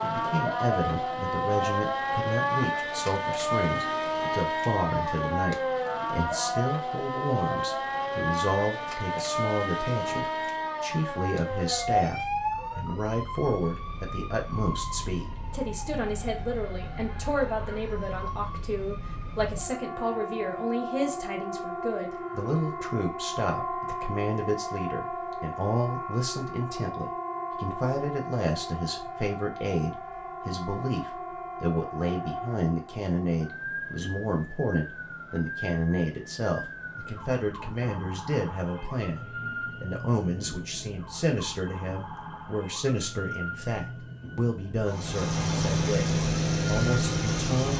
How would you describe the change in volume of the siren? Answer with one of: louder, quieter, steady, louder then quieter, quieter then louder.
quieter.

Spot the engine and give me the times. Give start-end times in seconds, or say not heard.
44.9-47.7.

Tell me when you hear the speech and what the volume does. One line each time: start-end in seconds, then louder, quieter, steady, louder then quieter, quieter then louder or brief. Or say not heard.
0.0-47.7 steady.